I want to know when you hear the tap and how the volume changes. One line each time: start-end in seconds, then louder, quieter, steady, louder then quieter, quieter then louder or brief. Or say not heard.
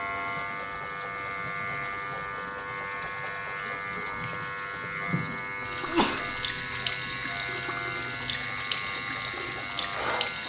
0.0-10.4 louder.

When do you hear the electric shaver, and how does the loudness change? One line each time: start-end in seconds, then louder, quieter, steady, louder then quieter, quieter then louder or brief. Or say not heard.
0.0-10.4 steady.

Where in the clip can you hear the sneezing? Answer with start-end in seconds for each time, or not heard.
5.8-6.4.